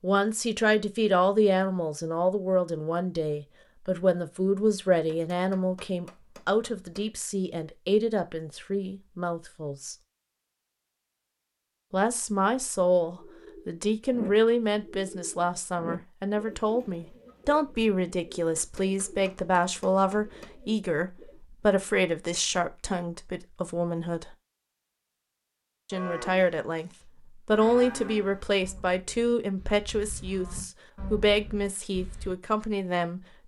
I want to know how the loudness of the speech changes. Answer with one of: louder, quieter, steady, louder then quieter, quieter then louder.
steady.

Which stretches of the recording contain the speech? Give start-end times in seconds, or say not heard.
0.0-9.9, 11.9-24.3, 25.9-33.2.